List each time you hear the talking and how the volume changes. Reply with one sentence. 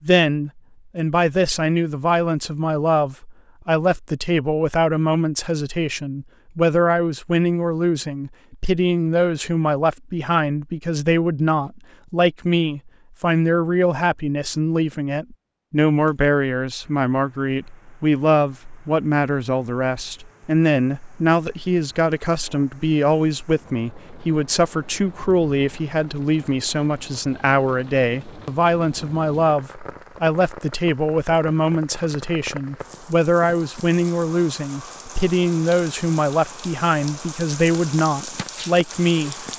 You can hear the talking from 0.0 to 39.5 s, at a steady volume.